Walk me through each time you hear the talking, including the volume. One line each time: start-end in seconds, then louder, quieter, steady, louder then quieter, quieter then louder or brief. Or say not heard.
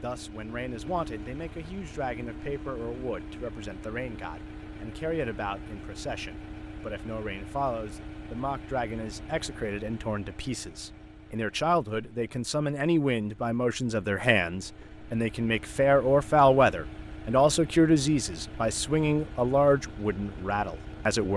0.0-21.3 louder.